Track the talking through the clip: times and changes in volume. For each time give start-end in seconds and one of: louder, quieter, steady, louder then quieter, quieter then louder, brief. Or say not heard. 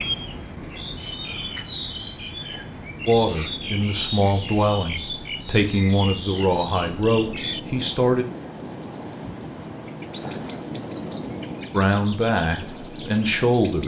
3.0-8.2 steady
11.7-13.8 brief.